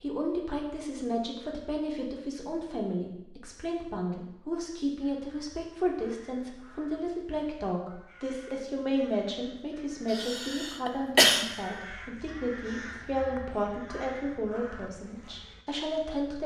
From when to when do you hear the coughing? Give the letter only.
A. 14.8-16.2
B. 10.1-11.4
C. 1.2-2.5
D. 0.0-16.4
B.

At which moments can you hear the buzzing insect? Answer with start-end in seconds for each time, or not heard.
not heard.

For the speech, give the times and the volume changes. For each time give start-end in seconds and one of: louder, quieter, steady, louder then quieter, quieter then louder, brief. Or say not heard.
0.0-16.4 steady.